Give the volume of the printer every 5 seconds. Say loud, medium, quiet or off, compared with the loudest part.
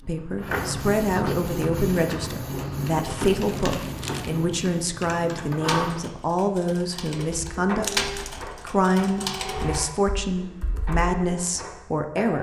loud, loud, medium.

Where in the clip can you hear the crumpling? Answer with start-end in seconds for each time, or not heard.
3.4-4.3, 7.8-8.5.